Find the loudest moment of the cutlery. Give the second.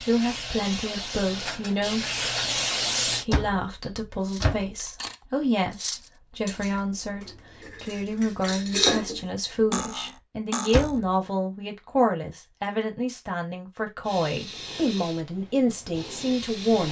9 s.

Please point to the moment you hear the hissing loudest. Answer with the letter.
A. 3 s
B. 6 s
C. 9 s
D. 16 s
A.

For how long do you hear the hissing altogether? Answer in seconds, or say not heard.
6 s.